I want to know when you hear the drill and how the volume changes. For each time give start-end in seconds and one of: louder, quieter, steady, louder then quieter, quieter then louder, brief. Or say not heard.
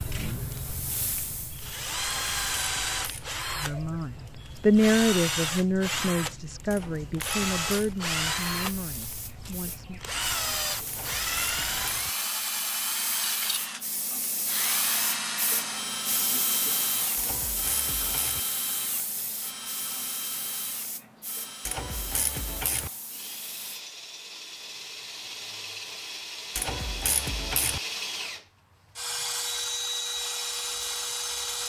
0.0-31.6 quieter then louder.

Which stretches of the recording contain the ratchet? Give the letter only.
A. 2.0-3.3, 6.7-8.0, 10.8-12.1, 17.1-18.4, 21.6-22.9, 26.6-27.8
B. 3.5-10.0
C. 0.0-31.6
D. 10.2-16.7
A.